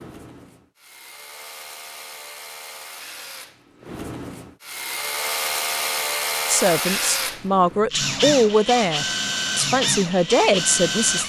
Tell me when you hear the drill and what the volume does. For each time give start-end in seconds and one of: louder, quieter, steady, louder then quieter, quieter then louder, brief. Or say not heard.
0.0-11.2 louder.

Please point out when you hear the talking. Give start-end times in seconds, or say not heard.
6.5-11.2.